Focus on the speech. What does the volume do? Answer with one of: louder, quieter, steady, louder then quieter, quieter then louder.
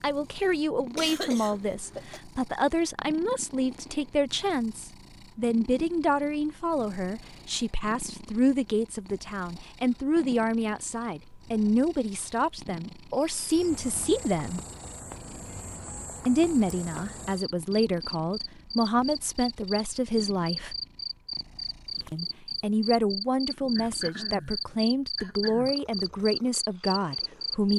steady.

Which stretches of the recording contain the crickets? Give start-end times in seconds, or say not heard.
13.1-27.7.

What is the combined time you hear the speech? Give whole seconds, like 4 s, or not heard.
25 s.